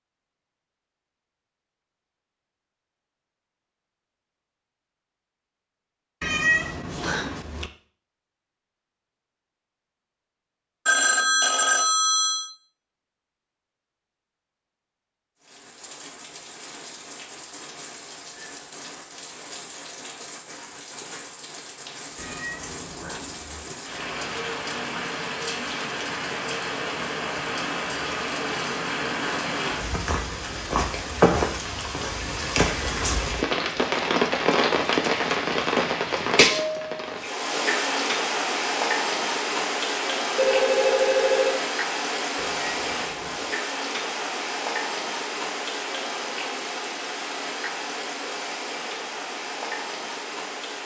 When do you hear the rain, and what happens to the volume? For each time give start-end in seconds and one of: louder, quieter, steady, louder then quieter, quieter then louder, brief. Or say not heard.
15.4-50.8 louder then quieter.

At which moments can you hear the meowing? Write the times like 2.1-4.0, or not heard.
6.2-7.7, 22.1-23.6, 42.4-43.5.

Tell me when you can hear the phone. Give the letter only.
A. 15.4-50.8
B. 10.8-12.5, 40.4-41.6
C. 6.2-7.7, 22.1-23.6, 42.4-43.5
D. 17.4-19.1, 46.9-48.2
B.